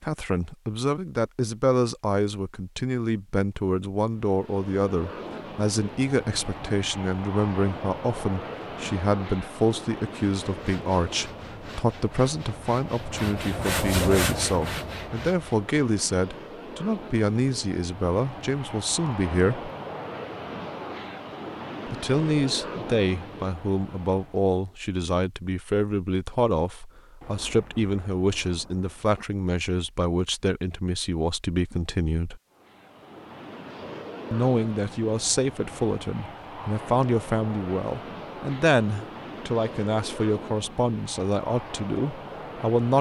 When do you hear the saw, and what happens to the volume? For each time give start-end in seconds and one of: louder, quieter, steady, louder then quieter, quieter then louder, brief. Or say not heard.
10.2-15.7 louder then quieter.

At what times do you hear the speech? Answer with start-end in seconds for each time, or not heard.
0.0-19.7, 21.9-32.4, 34.3-42.9.